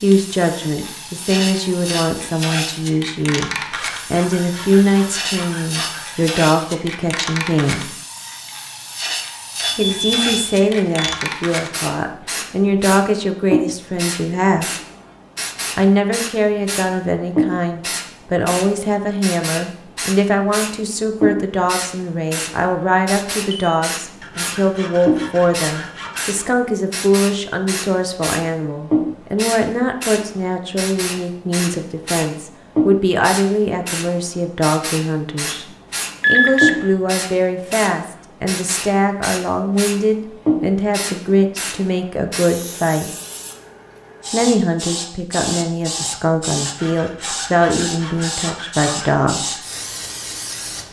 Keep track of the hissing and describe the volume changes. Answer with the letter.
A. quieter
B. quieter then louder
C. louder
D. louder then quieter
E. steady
E.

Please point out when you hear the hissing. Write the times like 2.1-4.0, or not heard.
0.0-50.8.